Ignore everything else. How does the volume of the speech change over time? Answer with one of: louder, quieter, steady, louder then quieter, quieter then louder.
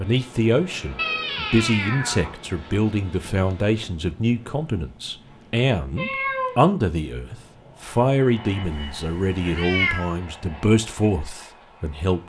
steady.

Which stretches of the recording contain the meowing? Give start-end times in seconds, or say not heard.
0.9-2.4, 6.0-6.7, 8.6-10.1.